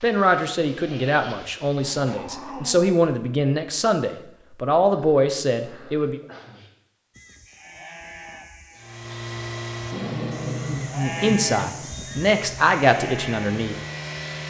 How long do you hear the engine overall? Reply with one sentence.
The engine can be heard for 6 seconds in total.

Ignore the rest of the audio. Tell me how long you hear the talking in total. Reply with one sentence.
The talking can be heard for 9 seconds in total.